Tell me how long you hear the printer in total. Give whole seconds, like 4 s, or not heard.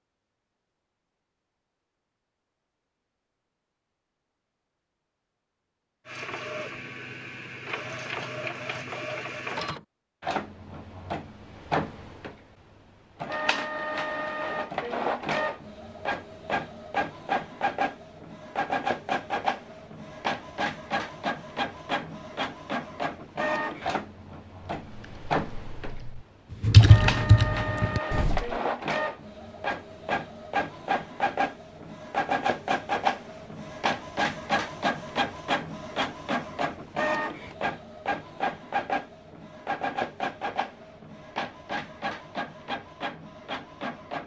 38 s.